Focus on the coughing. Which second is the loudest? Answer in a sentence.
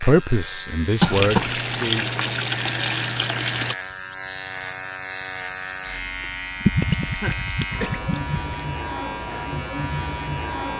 The volume of the coughing peaks at 1 second.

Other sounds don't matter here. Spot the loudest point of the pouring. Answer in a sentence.
The volume of the pouring peaks at 7 seconds.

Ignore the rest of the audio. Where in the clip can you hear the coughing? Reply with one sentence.
The coughing can be heard from 1.0 to 1.6 s and from 6.6 to 8.1 s.